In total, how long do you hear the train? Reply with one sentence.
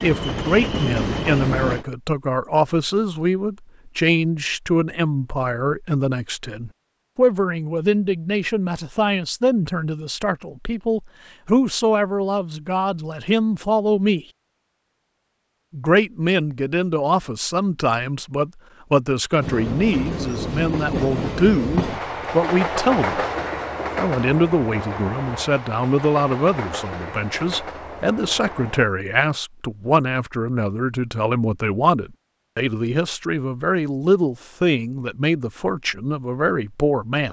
You can hear the train for 11 seconds altogether.